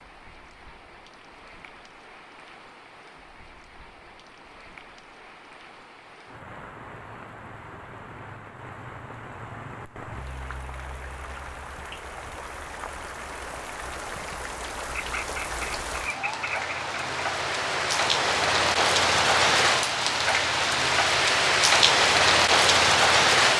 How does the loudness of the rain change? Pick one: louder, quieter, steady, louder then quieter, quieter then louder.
louder.